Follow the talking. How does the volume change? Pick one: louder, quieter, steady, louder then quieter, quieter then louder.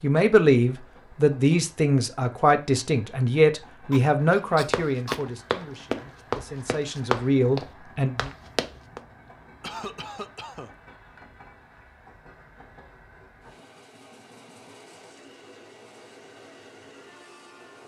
quieter then louder.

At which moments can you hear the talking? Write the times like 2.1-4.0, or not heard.
0.0-8.3.